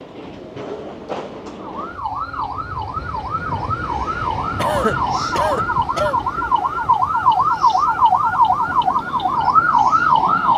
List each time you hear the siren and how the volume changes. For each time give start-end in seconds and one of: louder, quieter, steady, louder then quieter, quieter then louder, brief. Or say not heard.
1.6-10.5 louder.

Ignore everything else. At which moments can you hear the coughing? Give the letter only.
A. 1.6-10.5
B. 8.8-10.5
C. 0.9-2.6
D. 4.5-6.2
D.